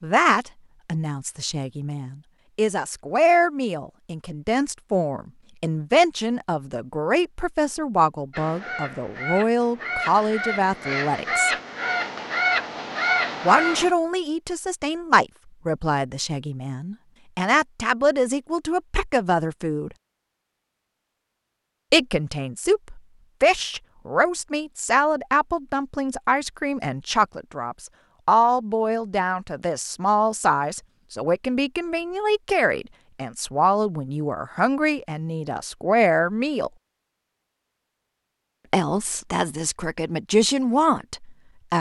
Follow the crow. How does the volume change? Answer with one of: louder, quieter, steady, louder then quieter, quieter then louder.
louder.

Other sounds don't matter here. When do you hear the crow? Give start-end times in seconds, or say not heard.
8.3-13.9.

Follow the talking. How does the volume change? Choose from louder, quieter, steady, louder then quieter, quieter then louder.
steady.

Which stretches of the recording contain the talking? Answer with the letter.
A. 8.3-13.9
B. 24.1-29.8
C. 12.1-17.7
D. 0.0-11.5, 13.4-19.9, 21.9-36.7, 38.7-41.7
D.